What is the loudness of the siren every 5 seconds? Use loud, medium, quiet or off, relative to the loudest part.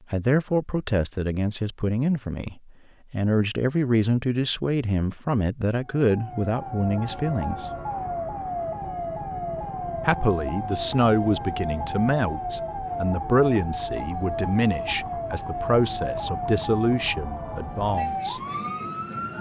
off, loud, loud, loud.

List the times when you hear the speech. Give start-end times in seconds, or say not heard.
0.1-7.7, 10.1-18.4.